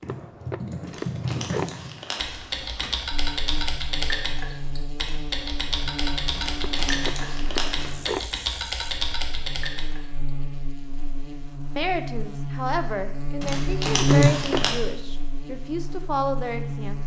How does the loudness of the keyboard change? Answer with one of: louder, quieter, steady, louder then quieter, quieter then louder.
steady.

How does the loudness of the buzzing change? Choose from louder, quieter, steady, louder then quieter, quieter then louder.
louder.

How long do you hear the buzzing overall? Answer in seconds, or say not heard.
14 s.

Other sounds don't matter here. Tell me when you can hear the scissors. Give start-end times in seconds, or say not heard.
0.1-1.8, 6.6-8.2, 14.3-14.8.